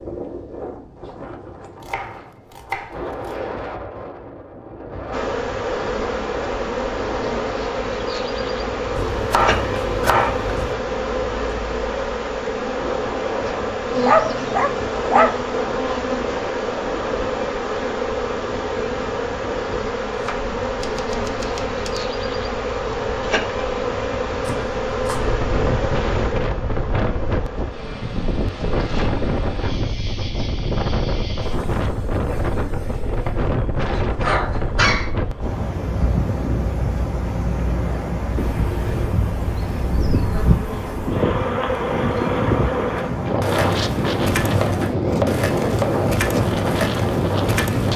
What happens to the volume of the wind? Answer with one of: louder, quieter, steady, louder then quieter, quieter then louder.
louder.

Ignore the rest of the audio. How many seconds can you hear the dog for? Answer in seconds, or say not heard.
3 s.